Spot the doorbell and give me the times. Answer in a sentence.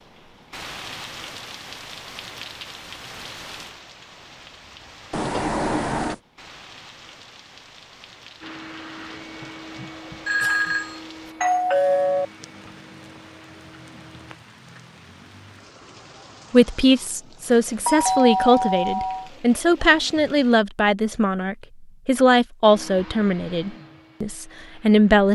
You can hear the doorbell from 5.1 to 6.2 s, from 10.2 to 12.2 s and from 17.9 to 19.3 s.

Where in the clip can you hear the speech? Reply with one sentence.
You can hear the speech from 16.5 to 25.3 s.